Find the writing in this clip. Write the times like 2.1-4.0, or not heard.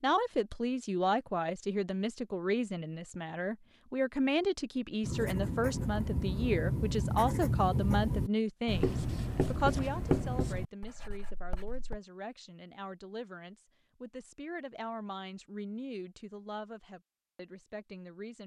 5.0-12.0.